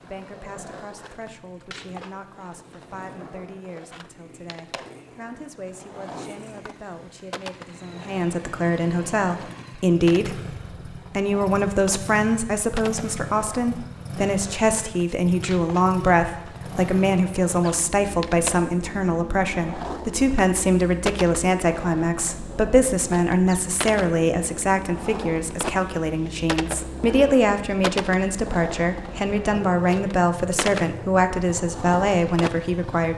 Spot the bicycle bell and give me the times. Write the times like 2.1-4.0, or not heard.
not heard.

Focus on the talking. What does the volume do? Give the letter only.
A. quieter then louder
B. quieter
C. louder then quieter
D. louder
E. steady
D.